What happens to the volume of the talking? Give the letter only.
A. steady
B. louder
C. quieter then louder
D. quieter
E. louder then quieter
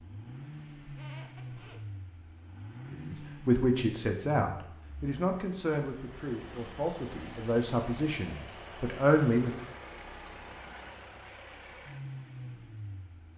C.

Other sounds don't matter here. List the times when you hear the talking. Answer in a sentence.
You can hear the talking from 2.9 to 9.6 s.